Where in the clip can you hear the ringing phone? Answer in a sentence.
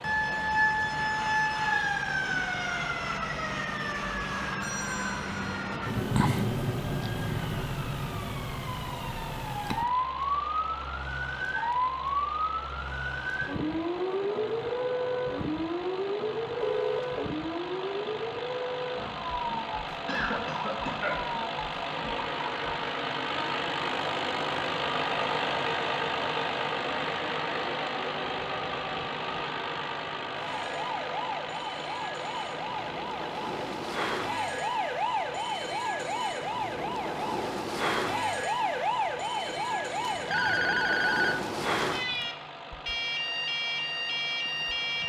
The ringing phone can be heard from 4.6 to 5.5 s, from 16.6 to 17.2 s and from 40.0 to 42.3 s.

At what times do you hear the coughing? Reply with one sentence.
The coughing can be heard from 20.1 to 21.1 s.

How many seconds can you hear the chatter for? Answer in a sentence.
You can't hear the chatter here.